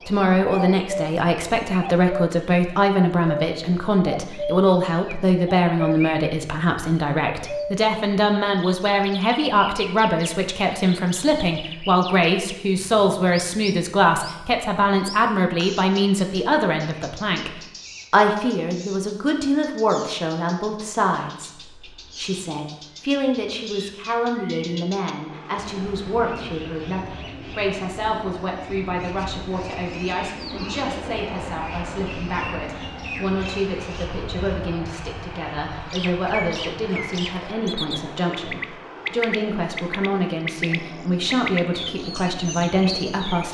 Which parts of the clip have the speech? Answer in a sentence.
You can hear the speech from 0.1 to 43.4 s.